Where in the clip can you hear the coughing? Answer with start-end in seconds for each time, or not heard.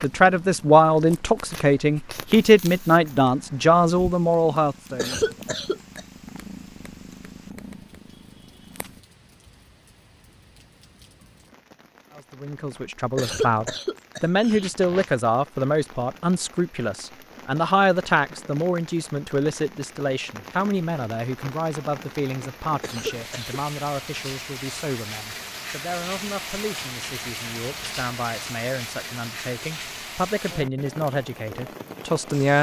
5.0-6.0, 13.2-15.1, 22.8-23.6.